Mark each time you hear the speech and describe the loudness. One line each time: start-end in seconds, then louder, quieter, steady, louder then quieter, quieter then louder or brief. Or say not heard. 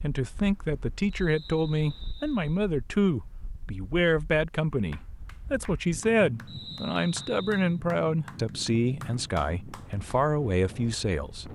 0.0-11.5 steady.